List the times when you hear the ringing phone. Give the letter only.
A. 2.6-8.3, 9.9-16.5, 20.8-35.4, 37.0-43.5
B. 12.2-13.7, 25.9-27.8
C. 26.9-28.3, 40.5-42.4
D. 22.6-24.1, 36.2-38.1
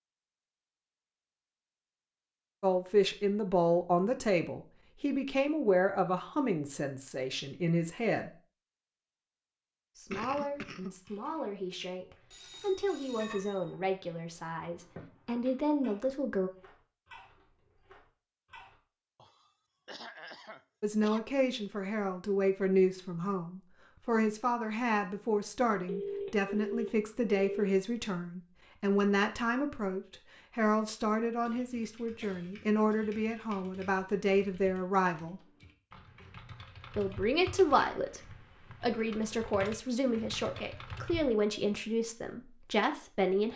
B.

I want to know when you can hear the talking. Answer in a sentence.
The talking can be heard from 2.6 to 8.3 s, from 9.9 to 16.5 s, from 20.8 to 35.4 s and from 37.0 to 43.5 s.